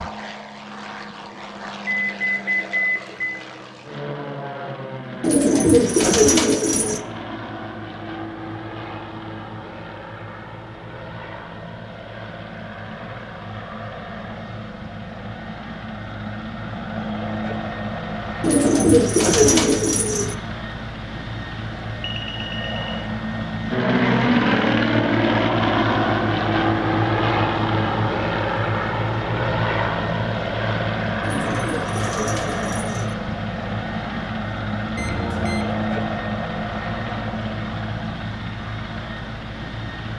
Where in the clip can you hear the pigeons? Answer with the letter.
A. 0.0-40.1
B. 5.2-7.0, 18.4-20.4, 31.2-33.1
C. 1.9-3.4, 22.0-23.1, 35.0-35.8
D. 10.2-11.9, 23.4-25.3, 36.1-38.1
B.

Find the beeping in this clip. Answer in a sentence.
The beeping can be heard from 1.9 to 3.4 s, from 22.0 to 23.1 s and from 35.0 to 35.8 s.